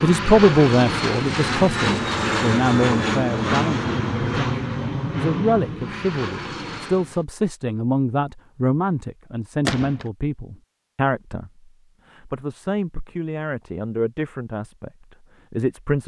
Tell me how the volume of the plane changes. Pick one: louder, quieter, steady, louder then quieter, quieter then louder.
quieter.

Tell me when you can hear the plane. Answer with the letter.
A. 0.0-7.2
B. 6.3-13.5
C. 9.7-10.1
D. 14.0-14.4
A.